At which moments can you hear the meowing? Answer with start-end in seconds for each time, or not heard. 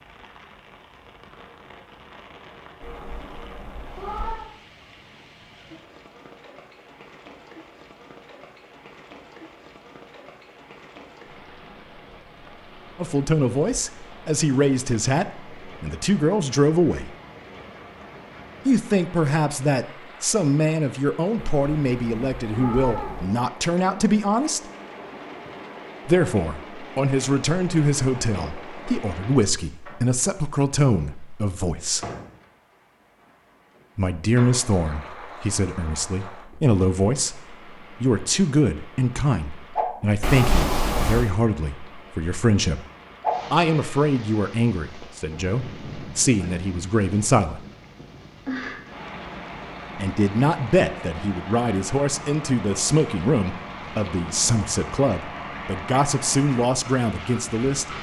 2.8-4.5, 21.5-23.3, 40.2-41.3.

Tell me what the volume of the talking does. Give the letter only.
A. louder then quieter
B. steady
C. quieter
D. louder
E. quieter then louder
B.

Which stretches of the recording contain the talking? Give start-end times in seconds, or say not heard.
12.9-17.1, 18.6-24.6, 26.1-32.0, 34.0-42.9, 43.5-47.6, 50.0-57.9.